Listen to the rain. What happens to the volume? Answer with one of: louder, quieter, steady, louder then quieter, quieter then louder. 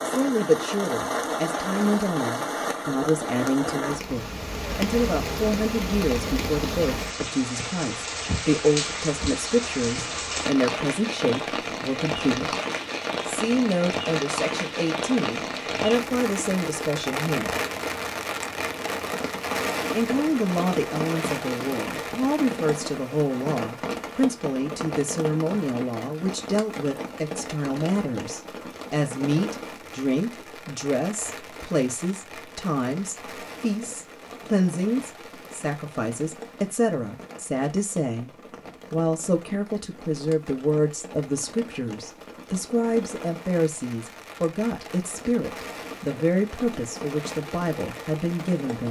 quieter.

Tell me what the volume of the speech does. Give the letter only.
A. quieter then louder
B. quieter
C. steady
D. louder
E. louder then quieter
C.